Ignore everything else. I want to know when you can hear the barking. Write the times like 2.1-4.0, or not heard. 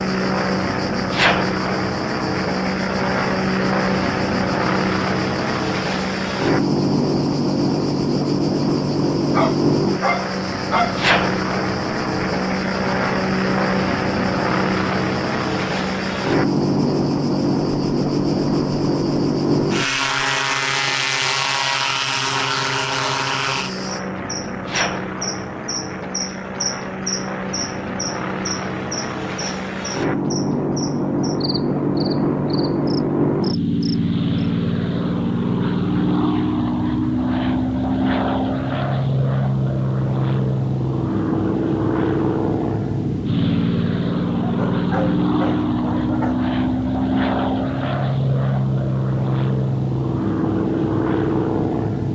9.3-11.0, 44.3-46.4.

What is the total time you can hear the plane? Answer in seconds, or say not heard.
52 s.